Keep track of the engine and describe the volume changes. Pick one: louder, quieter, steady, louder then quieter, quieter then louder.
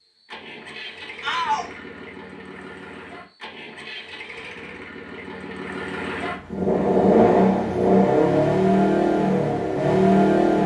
louder.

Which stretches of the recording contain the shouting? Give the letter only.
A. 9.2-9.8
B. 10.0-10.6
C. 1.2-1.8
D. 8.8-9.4
C.